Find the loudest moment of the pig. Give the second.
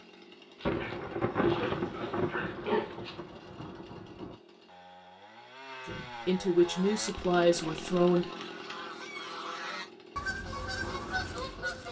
3 s.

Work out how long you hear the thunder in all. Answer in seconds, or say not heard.
4 s.